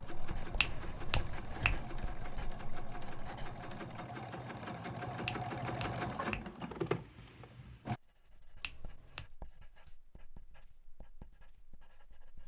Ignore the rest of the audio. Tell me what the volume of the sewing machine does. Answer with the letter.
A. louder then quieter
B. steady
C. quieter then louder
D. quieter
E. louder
E.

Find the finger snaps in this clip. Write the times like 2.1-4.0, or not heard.
0.6-1.9, 5.2-6.5, 8.6-9.3.